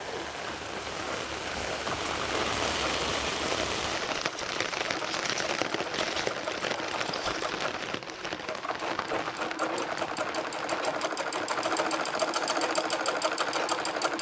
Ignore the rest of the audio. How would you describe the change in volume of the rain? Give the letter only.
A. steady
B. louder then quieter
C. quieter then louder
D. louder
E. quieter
E.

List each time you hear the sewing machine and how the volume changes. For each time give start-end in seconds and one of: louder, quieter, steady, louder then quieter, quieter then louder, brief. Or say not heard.
0.0-14.1 louder.